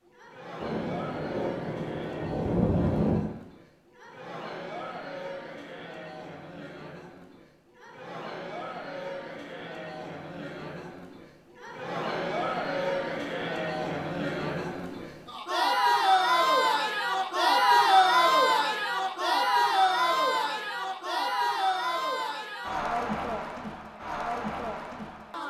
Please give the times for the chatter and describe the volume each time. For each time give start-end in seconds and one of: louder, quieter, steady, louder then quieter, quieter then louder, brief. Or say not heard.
0.1-25.4 louder then quieter.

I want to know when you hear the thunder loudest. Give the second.
3 s.